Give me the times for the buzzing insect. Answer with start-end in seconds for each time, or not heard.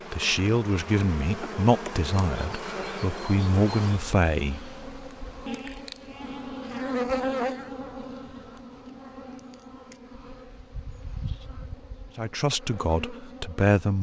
0.0-13.9.